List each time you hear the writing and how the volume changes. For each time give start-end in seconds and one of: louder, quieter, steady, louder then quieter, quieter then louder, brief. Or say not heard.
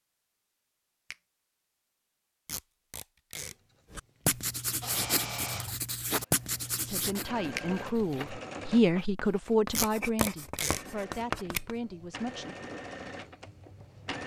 3.9-11.8 quieter then louder.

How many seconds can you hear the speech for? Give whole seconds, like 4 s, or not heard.
6 s.